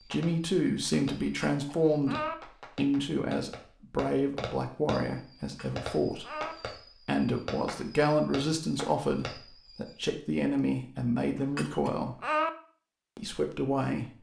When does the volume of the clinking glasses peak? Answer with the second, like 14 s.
12 s.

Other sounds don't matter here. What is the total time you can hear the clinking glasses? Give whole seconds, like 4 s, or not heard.
3 s.